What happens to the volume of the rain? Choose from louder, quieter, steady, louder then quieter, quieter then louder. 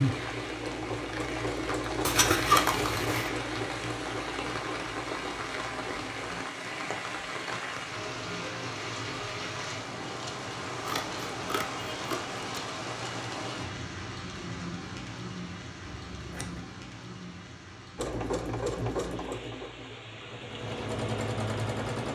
quieter.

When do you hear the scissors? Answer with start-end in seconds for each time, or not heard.
2.0-3.3, 10.8-12.3, 15.8-16.7.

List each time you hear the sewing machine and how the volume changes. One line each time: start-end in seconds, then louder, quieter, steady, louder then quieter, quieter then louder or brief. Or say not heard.
0.0-6.5 quieter
17.9-22.0 quieter then louder.